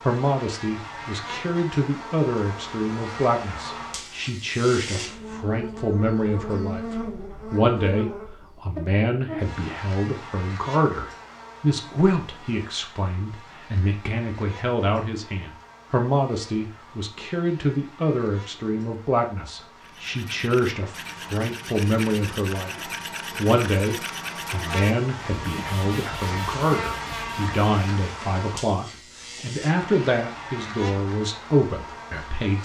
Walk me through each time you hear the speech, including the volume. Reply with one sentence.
The speech can be heard from 0.1 to 32.5 s, at a steady volume.